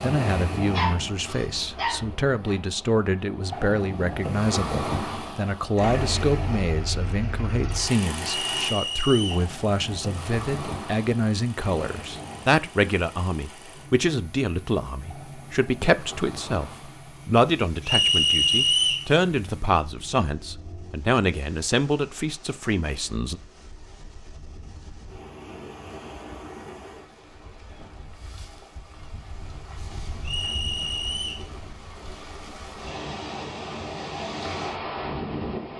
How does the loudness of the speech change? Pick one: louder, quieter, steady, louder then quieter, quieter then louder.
steady.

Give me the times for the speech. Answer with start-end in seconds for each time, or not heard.
0.0-23.4.